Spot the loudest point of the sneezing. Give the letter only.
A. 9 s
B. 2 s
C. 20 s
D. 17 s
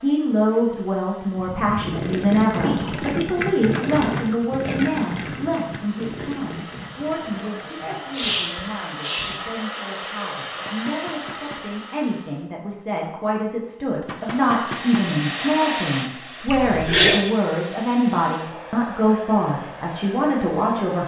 D.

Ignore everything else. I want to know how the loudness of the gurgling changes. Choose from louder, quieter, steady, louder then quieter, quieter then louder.
quieter.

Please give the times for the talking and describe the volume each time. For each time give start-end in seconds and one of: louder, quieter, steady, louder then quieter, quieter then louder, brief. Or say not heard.
0.0-21.0 quieter then louder.